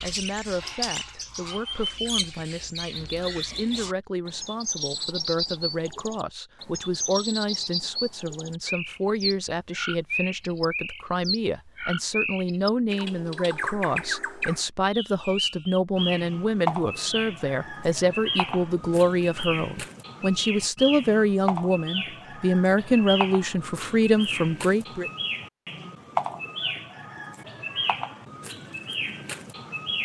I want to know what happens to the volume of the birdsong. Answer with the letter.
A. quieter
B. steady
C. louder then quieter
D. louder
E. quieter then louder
B.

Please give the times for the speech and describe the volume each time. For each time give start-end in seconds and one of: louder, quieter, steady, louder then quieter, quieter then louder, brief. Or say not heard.
0.0-25.1 louder.